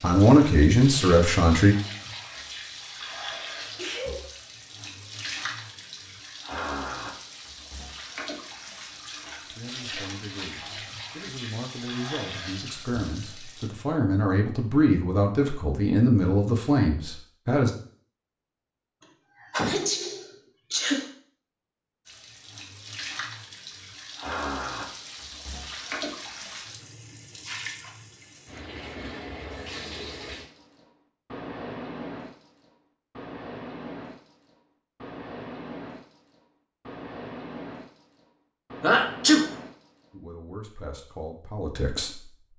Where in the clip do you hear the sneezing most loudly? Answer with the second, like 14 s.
39 s.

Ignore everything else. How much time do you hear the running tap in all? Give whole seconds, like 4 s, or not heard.
32 s.